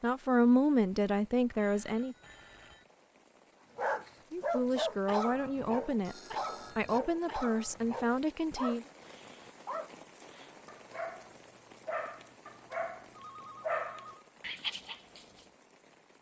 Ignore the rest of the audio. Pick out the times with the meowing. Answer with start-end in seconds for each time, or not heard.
not heard.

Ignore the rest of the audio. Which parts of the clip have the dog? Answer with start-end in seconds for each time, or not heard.
3.8-15.4.